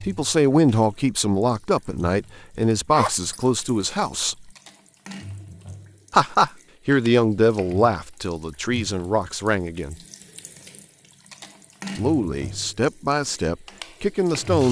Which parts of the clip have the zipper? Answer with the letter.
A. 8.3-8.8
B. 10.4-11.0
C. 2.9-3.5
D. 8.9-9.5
C.